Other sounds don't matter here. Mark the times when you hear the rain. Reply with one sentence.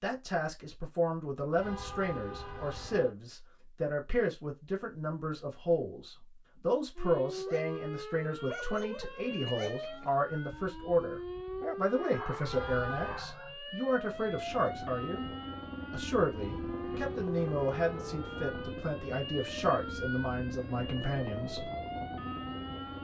You can't hear the rain here.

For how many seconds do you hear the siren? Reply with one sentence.
You can hear the siren for 16 seconds altogether.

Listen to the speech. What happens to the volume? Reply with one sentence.
The volume of the speech stays about the same.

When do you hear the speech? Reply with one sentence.
The speech can be heard from 0.0 to 15.2 s and from 15.9 to 21.6 s.